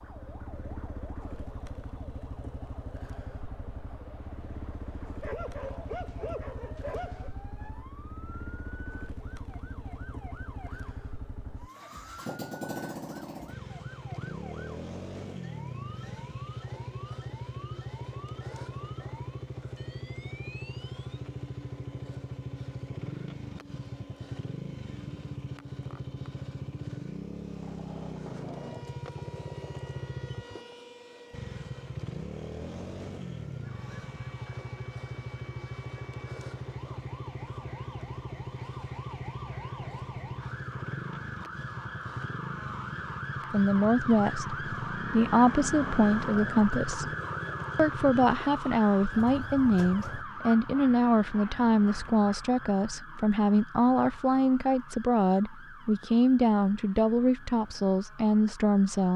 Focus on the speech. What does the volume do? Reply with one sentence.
The volume of the speech stays about the same.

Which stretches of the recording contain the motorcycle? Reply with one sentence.
The motorcycle can be heard from 0.0 to 50.2 s.